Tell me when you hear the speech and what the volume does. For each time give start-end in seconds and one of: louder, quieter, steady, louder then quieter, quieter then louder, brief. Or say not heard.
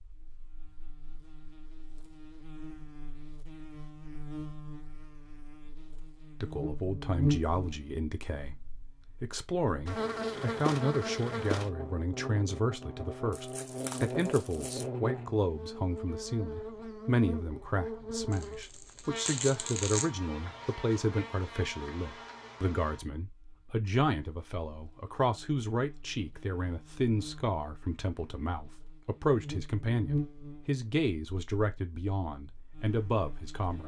6.4-33.8 steady.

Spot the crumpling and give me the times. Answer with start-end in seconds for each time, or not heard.
13.3-14.8, 18.3-20.1.